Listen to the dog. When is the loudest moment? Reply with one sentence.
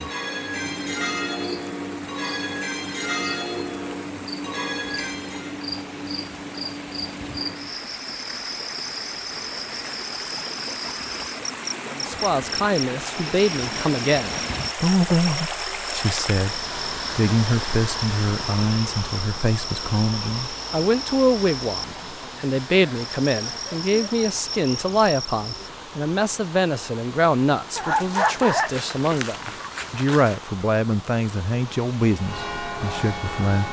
The volume of the dog peaks at 28 seconds.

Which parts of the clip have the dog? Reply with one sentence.
You can hear the dog from 27.8 to 30.4 s.